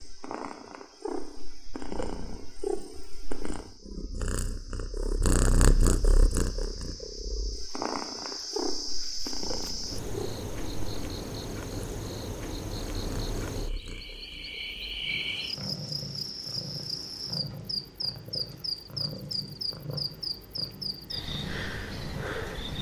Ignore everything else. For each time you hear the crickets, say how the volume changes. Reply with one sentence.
The crickets can be heard from 0.0 to 22.7 s, getting louder.